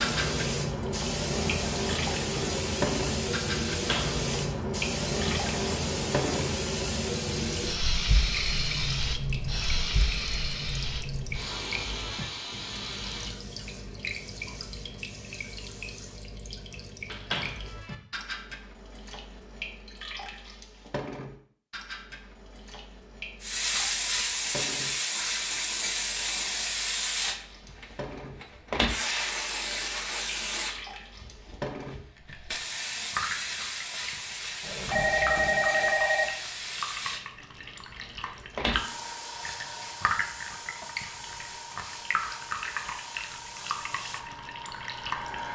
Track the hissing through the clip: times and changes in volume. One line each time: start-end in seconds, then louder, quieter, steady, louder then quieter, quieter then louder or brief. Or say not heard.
0.0-16.3 quieter
23.4-45.5 quieter.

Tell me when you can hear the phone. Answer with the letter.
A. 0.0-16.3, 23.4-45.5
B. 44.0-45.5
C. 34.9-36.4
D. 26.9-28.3
C.